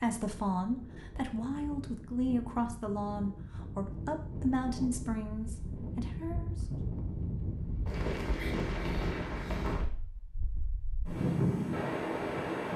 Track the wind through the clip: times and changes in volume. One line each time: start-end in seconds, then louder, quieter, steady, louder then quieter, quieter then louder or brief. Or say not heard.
0.0-12.7 louder.